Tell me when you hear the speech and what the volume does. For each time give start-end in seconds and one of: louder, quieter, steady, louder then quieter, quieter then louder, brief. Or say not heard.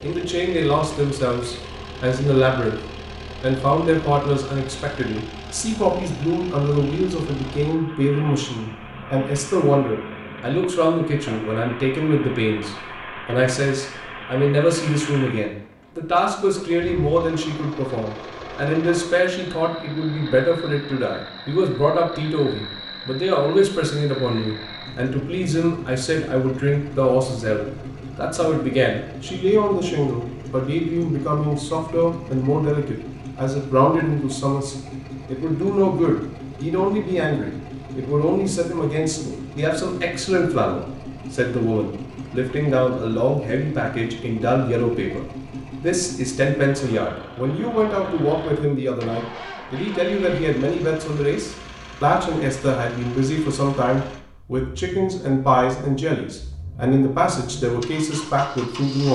0.0-2.8 brief
3.4-59.1 steady.